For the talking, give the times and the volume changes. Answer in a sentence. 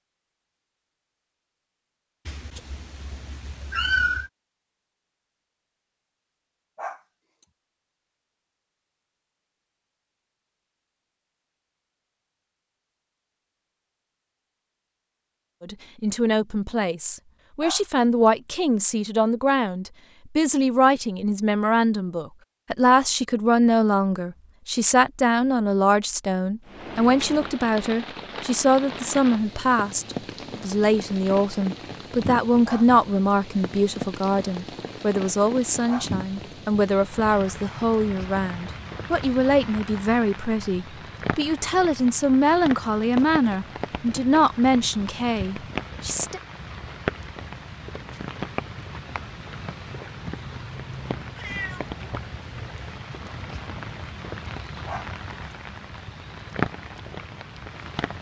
You can hear the talking from 15.6 to 46.4 s, at a steady volume.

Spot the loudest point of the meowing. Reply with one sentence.
The loudest moment of the meowing is at 4 seconds.